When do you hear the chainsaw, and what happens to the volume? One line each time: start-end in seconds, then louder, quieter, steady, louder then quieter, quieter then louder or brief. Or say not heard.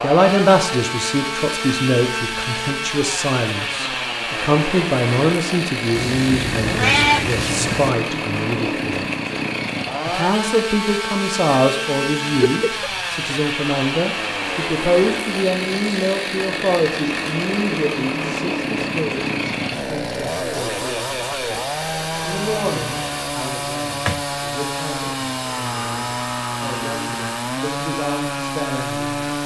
0.0-29.4 steady.